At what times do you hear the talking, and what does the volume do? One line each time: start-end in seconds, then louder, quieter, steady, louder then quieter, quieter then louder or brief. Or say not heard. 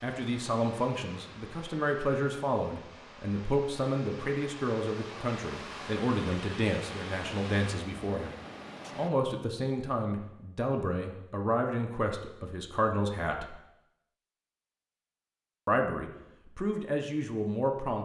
0.0-8.3 steady
8.9-13.6 steady
15.7-17.9 brief.